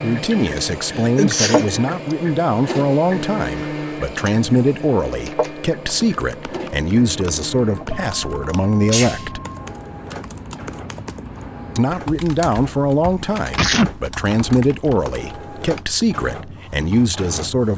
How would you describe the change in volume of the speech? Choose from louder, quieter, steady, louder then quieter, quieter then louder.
steady.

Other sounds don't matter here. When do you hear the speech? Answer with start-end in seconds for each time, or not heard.
0.0-9.4, 11.8-17.7.